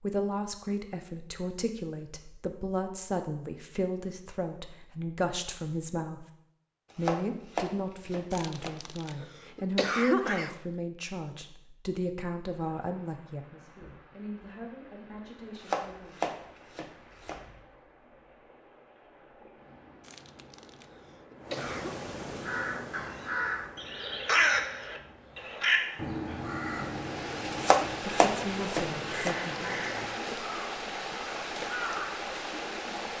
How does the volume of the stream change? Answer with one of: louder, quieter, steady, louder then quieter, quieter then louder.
louder.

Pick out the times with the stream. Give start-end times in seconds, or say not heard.
12.4-33.1.